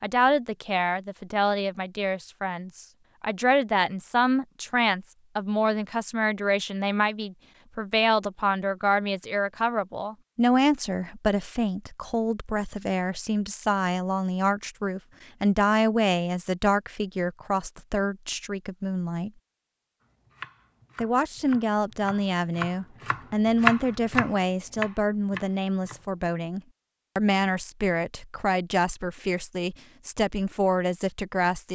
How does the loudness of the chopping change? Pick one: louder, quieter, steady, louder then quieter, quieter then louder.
louder then quieter.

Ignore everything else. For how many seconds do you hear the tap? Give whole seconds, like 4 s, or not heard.
not heard.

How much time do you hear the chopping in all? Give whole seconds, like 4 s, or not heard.
6 s.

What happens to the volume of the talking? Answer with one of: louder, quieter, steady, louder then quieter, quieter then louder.
steady.